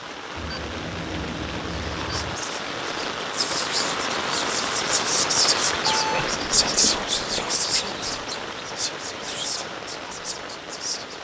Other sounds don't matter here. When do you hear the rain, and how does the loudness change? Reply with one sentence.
You can hear the rain from 0.0 to 11.2 s, getting louder then quieter.